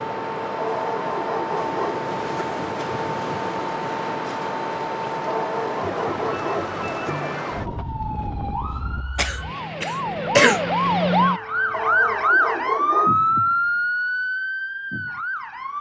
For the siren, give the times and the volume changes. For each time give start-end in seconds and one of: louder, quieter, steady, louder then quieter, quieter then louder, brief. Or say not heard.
0.0-15.7 louder.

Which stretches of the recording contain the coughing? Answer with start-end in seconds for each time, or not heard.
9.2-10.6.